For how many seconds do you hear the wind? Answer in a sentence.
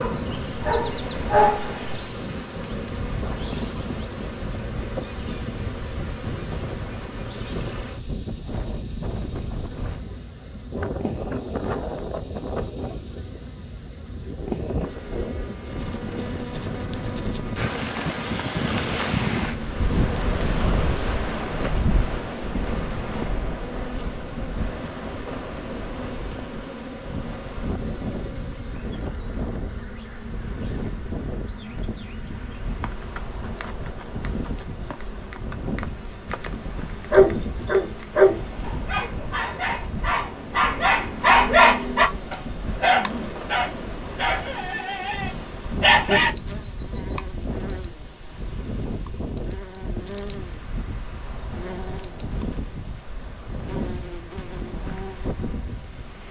The wind can be heard for 56 seconds in total.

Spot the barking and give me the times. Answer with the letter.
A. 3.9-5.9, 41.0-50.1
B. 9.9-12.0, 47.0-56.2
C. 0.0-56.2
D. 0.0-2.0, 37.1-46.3
D.